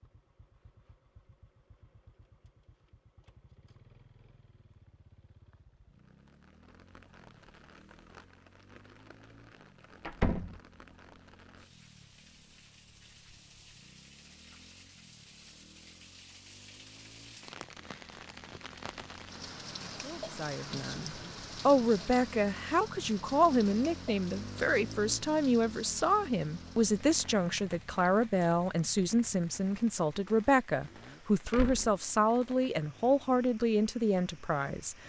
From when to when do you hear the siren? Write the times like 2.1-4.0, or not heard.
not heard.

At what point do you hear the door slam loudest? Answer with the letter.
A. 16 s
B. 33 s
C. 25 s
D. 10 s
D.